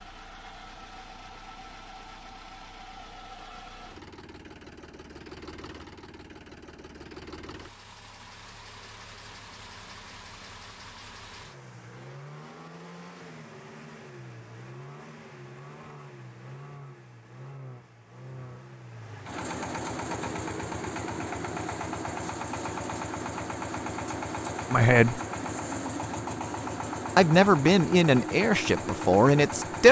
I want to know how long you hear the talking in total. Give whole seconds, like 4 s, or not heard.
3 s.